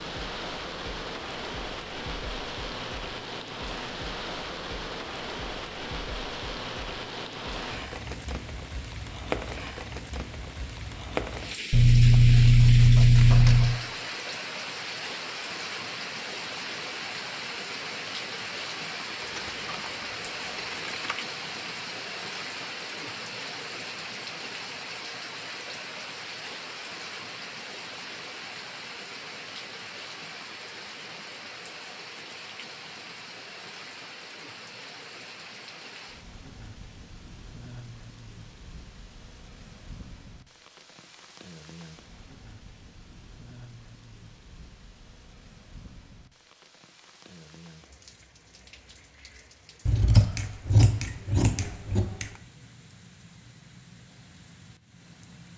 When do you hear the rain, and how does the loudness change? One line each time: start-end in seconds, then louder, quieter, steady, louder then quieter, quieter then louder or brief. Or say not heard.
0.0-55.5 quieter.